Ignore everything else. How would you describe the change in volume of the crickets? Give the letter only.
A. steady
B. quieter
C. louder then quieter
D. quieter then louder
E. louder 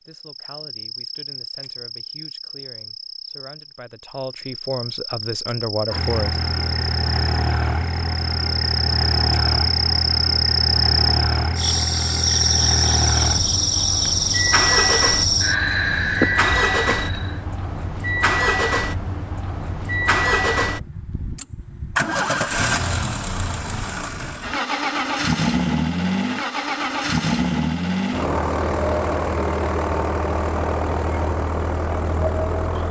E.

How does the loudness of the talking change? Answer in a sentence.
The volume of the talking goes up.